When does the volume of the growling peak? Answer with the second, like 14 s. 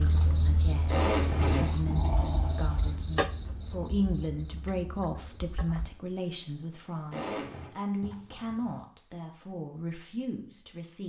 2 s.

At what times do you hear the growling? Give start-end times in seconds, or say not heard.
1.6-3.1, 8.0-8.8.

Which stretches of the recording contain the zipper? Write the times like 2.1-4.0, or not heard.
0.8-1.8, 7.1-7.7.